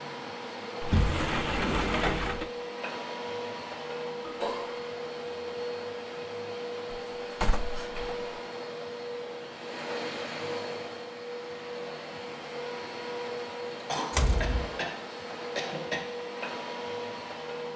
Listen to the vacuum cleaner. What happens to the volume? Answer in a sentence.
The volume of the vacuum cleaner stays about the same.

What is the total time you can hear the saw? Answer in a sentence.
You can't hear the saw here.